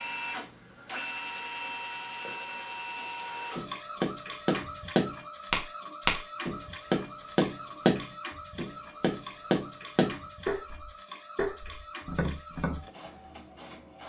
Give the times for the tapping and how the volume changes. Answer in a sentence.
You can hear the tapping from 3.5 to 12.8 s, getting quieter.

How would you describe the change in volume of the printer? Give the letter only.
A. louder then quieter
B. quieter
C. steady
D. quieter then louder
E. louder
B.